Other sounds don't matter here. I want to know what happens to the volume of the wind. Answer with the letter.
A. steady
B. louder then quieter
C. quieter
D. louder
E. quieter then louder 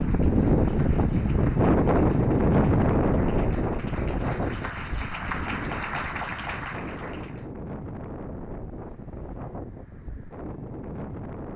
C.